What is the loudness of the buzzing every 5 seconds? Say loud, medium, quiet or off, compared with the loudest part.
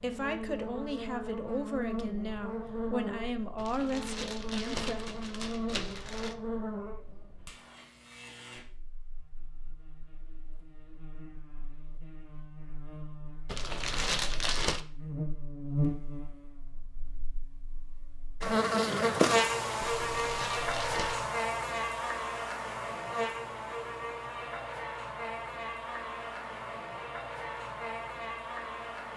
medium, medium, quiet, loud, loud, medium.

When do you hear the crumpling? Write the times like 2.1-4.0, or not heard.
3.5-6.3, 13.4-14.8, 20.1-21.2.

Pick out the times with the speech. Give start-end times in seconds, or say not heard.
0.0-5.0.